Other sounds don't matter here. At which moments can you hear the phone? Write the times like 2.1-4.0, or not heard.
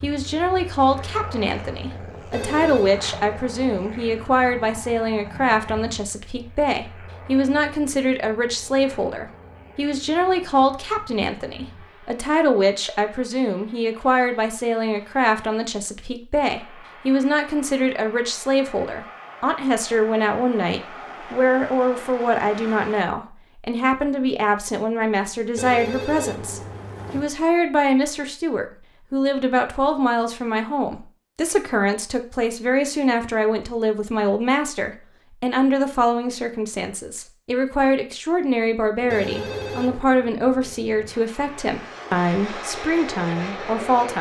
2.3-3.0, 25.6-27.3, 39.1-40.0.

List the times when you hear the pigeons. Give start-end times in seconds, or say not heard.
not heard.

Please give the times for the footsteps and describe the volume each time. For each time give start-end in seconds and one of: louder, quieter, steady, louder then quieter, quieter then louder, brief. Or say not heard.
not heard.